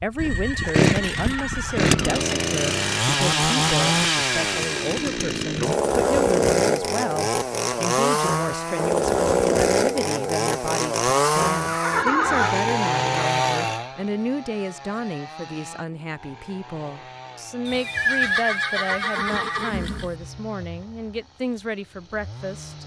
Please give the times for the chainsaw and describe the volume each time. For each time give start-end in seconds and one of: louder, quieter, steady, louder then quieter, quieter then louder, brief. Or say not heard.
0.0-22.8 quieter.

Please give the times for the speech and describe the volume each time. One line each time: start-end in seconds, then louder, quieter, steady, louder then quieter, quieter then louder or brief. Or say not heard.
0.0-22.8 steady.